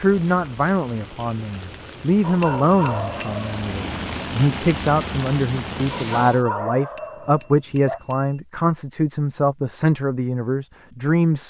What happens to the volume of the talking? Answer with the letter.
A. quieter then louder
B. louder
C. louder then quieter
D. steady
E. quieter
D.